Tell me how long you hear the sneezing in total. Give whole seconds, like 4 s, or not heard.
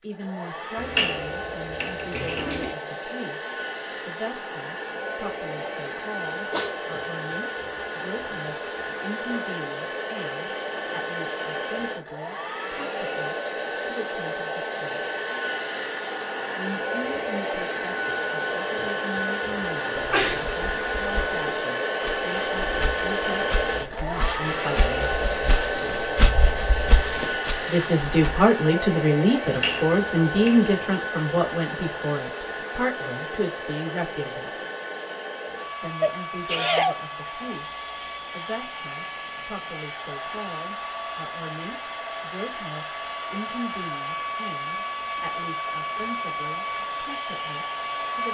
2 s.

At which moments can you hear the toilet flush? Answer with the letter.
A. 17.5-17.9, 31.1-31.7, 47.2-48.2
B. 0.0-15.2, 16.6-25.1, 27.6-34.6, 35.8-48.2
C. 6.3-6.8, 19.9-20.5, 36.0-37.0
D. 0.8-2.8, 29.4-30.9
D.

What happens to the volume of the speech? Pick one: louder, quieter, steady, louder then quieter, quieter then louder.
louder then quieter.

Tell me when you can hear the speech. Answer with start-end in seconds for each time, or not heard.
0.0-15.2, 16.6-25.1, 27.6-34.6, 35.8-48.2.